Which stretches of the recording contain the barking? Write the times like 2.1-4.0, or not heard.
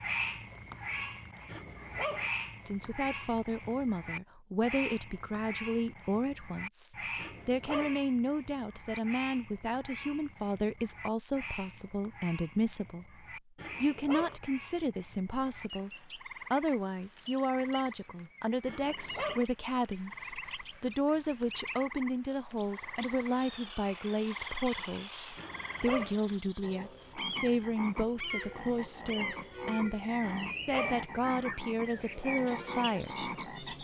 1.4-2.3, 7.2-8.0, 13.6-14.4, 18.6-19.4, 25.4-26.1, 30.2-31.1.